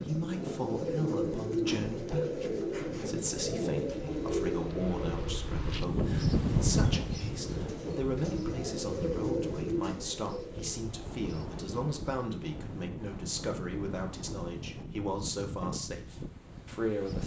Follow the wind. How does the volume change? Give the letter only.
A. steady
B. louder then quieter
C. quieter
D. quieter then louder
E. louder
B.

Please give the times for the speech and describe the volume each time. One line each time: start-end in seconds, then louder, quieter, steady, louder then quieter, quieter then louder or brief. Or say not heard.
0.1-17.2 steady.